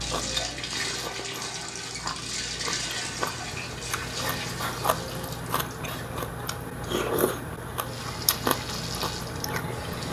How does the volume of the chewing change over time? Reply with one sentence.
The loudness of the chewing goes up.